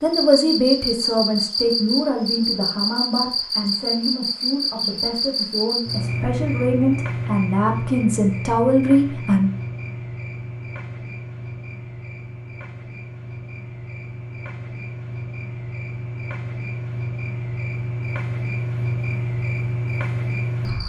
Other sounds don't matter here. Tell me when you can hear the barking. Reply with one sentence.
The barking can't be heard in this clip.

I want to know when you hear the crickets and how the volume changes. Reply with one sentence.
You can hear the crickets from 0.0 to 20.8 s, getting quieter then louder.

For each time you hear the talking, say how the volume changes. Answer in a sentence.
You can hear the talking from 0.0 to 9.5 s, getting quieter then louder.